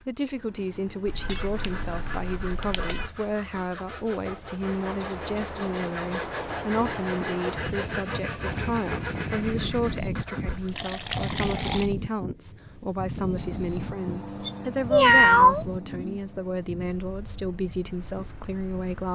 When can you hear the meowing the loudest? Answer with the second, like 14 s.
15 s.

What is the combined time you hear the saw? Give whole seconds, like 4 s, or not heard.
10 s.